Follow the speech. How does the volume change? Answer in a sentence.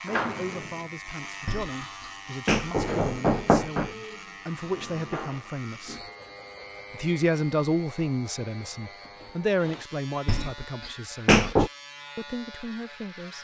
The loudness of the speech goes up, then down.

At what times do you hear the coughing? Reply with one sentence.
The coughing can't be heard in this clip.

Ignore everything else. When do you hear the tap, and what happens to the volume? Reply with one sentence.
You can't hear the tap here.